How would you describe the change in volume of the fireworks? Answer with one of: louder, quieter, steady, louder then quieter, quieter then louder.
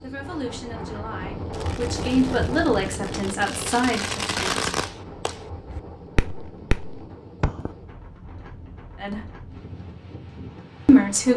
louder then quieter.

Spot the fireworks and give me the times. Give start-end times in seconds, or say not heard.
1.5-7.8.